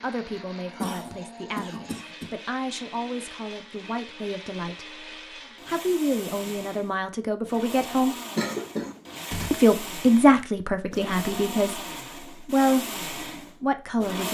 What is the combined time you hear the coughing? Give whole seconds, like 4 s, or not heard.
3 s.